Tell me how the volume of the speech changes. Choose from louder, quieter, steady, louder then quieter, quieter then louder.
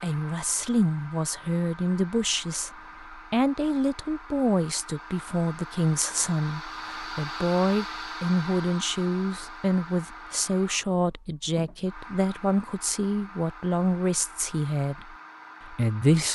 steady.